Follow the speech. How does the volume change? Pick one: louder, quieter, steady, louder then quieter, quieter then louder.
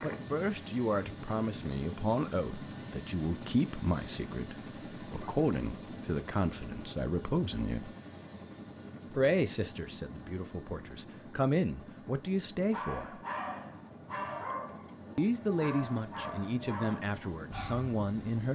steady.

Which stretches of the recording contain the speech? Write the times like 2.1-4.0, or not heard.
0.0-8.0, 9.1-13.2, 15.2-18.4.